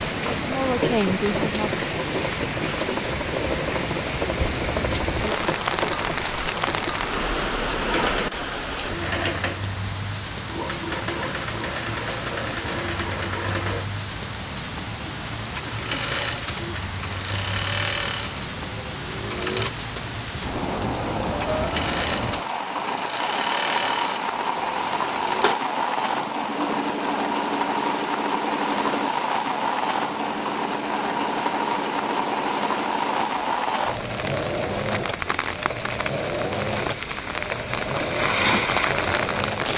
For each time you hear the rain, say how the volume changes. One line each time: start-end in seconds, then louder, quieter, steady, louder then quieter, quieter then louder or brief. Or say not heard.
0.0-39.7 steady.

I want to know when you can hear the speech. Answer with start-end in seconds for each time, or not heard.
0.2-1.8.